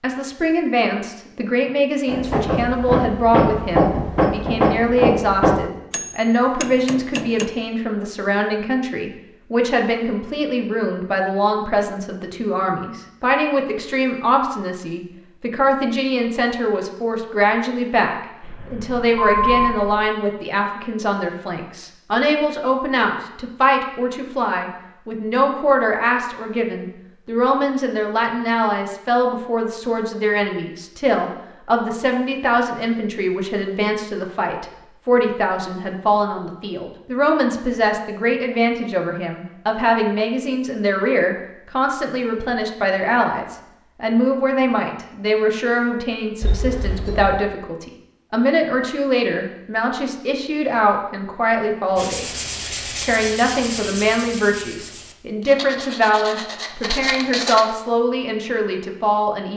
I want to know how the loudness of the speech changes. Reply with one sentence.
The loudness of the speech stays about the same.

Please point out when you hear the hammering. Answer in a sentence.
You can hear the hammering from 2.0 to 7.5 s.